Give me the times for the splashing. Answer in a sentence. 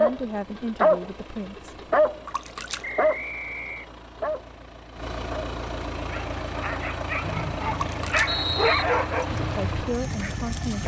The splashing can be heard from 2.2 to 2.9 s and from 7.7 to 8.3 s.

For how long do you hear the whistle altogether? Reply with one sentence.
The whistle can be heard for 3 seconds in total.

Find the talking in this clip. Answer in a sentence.
You can hear the talking from 0.0 to 1.6 s and from 9.3 to 10.8 s.